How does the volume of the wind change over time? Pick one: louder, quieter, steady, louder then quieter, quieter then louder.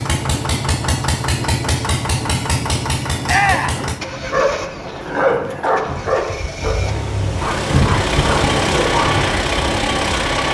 louder.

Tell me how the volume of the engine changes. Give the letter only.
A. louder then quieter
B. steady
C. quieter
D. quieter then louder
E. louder
D.